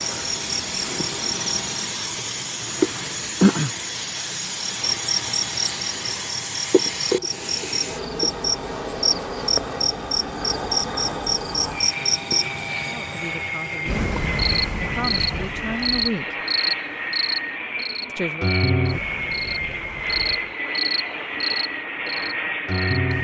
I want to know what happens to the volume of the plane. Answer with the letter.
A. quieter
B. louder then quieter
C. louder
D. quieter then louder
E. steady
E.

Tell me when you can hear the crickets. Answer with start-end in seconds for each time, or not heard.
0.0-23.1.